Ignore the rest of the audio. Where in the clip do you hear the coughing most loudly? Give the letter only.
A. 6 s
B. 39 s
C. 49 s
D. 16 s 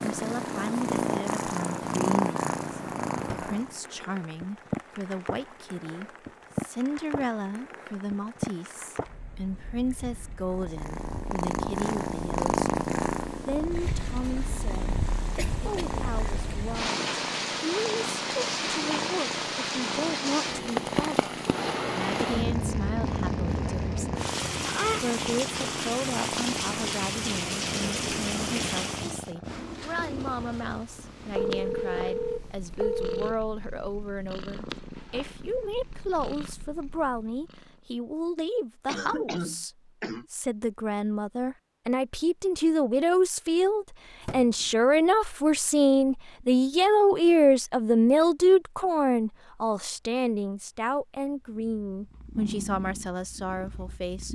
B.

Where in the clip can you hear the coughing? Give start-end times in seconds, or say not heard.
15.3-15.9, 38.9-40.2.